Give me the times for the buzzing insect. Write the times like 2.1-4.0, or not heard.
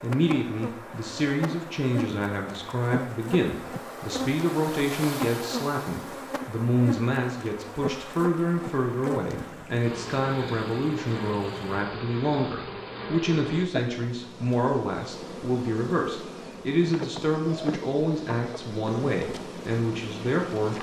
0.0-20.7.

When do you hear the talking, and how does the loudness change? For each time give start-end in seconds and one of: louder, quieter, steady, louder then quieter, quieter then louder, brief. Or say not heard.
0.0-20.7 steady.